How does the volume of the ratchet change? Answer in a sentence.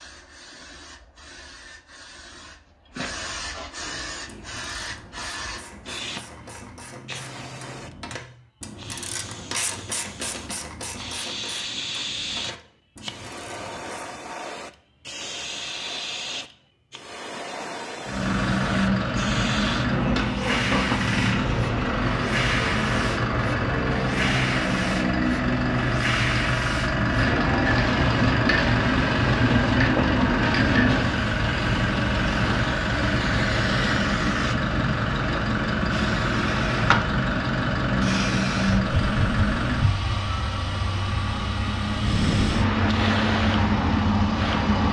The loudness of the ratchet goes up, then down.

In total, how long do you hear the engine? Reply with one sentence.
The engine can be heard for 27 seconds in total.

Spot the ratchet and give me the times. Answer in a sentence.
You can hear the ratchet from 3.8 to 14.2 s.